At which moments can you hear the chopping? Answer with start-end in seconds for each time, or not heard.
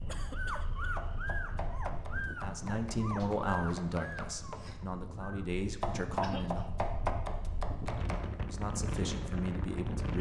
0.8-8.2.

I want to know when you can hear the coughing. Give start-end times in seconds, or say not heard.
0.1-1.0, 6.2-6.7.